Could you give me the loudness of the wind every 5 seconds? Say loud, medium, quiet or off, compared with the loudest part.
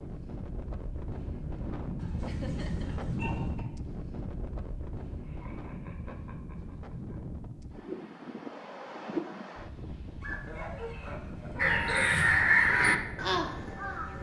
loud, loud, medium.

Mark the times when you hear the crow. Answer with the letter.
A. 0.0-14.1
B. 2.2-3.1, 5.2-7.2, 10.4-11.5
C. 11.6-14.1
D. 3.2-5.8
C.